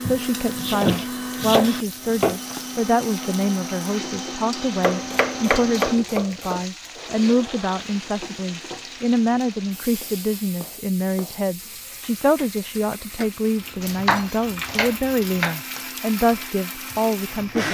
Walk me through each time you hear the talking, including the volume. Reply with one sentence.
You can hear the talking from 0.0 to 17.7 s, at a steady volume.